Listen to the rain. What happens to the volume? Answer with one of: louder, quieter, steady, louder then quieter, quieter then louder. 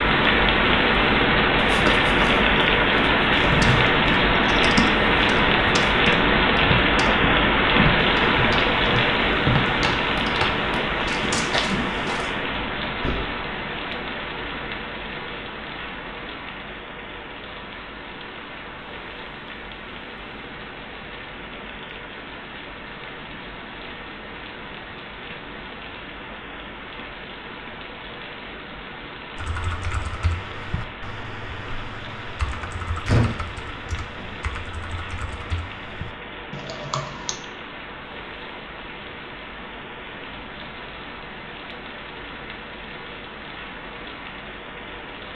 quieter.